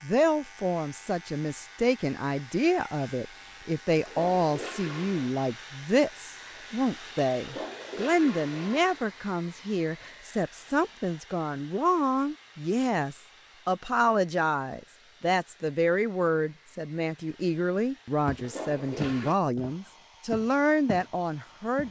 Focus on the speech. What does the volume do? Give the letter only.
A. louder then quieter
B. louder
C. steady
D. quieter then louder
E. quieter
C.